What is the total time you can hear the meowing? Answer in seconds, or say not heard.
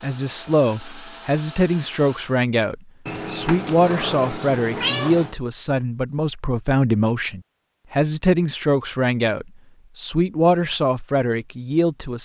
2 s.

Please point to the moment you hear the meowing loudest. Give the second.
5 s.